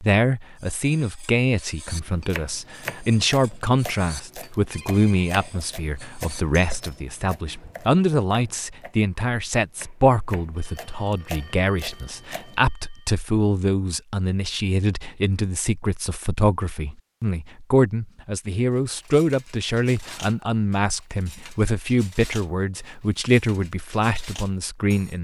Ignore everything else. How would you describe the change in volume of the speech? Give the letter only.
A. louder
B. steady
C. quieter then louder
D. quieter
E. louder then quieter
B.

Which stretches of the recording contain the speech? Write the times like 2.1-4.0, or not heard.
0.0-25.1.